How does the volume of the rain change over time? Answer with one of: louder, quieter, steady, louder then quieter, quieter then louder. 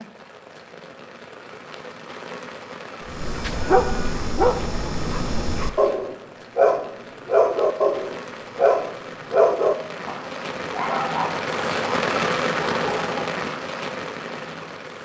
louder.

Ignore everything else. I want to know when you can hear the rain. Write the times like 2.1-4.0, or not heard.
0.0-15.0.